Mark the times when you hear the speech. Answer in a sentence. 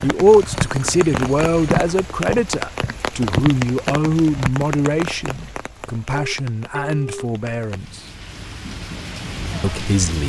You can hear the speech from 0.0 to 8.0 s and from 9.6 to 10.2 s.